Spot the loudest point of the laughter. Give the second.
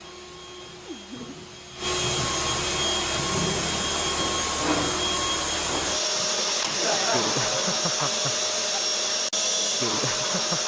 7 s.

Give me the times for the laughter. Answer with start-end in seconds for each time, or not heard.
0.8-1.4, 6.7-7.8.